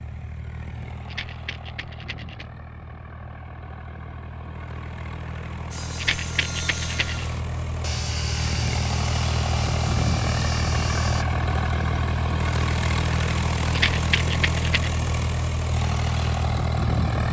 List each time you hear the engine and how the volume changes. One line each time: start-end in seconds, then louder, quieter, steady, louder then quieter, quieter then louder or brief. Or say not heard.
0.0-17.2 louder.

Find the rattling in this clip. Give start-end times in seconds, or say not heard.
1.1-2.5, 6.0-7.2, 13.7-15.0.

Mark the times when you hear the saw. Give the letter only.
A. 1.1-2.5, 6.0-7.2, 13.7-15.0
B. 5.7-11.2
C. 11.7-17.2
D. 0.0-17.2
B.